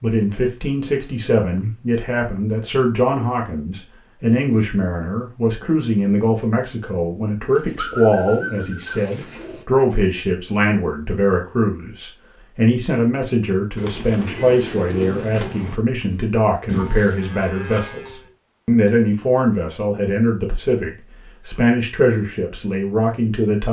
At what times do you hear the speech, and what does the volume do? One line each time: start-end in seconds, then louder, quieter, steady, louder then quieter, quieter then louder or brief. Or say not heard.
0.0-23.6 steady.